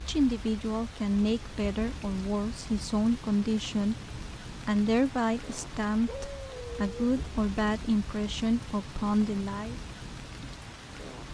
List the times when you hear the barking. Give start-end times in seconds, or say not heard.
6.0-7.2.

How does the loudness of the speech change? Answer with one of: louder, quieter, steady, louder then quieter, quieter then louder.
steady.